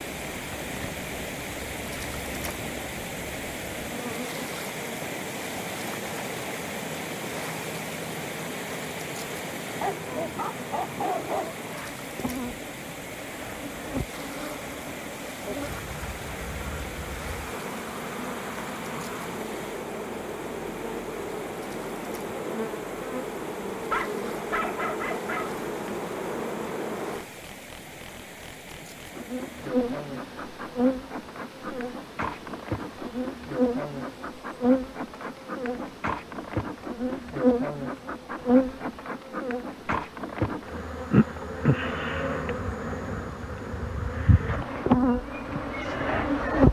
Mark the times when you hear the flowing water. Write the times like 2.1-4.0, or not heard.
0.0-46.6.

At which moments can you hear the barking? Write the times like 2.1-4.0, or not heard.
9.8-11.6, 23.9-25.5.